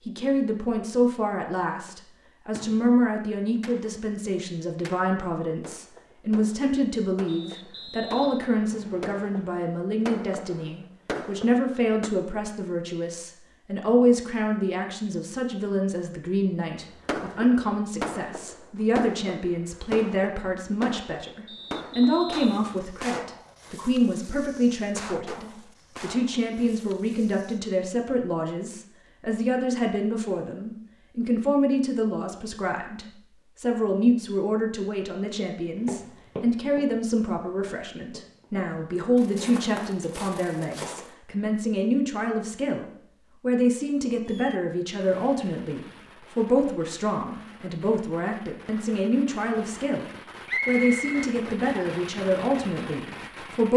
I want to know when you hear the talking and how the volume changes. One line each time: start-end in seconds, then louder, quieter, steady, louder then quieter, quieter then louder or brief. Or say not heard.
0.1-53.7 steady.